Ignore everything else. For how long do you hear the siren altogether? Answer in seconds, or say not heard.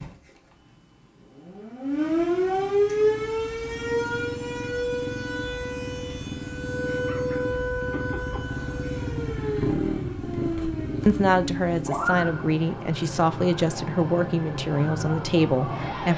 16 s.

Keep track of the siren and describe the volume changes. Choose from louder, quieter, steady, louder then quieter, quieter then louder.
quieter.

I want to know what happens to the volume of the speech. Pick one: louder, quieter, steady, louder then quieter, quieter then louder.
steady.